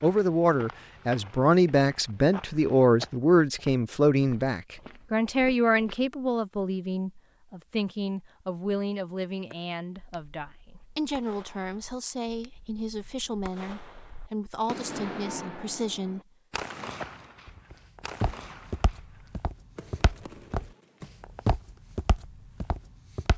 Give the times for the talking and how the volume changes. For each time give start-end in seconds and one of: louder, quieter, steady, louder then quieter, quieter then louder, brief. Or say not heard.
0.0-16.2 quieter.